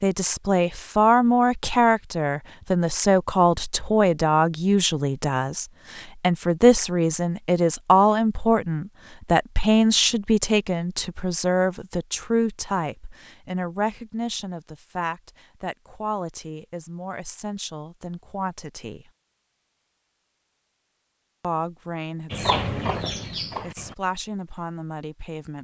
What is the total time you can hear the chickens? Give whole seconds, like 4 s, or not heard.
2 s.